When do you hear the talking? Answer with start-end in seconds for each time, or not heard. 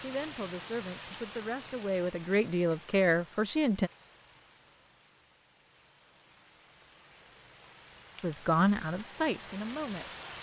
0.0-3.9, 8.2-10.1.